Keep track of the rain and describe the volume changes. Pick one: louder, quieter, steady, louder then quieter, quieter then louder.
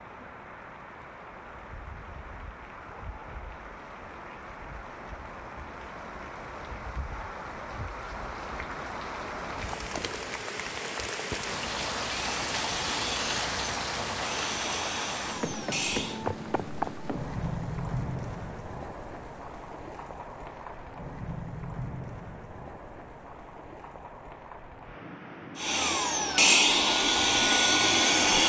louder then quieter.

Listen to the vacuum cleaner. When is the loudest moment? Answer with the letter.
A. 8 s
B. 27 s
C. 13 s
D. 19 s
B.